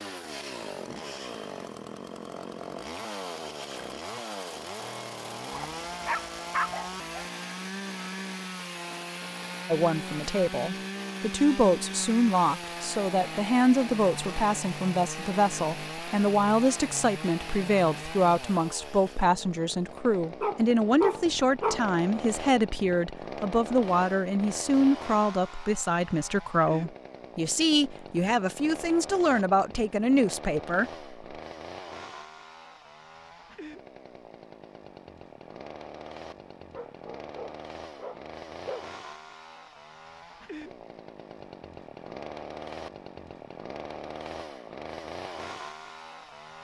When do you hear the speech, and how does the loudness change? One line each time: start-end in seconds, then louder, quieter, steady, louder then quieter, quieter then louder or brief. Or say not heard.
9.7-30.9 steady.